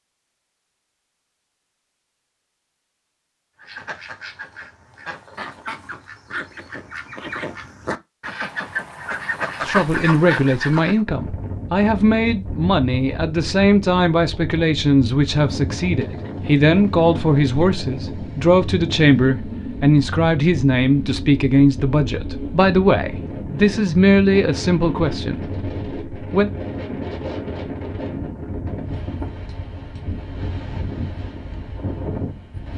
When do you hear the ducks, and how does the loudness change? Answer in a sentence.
The ducks can be heard from 3.5 to 11.1 s, getting louder.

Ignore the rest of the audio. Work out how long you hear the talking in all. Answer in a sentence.
The talking can be heard for 17 seconds in total.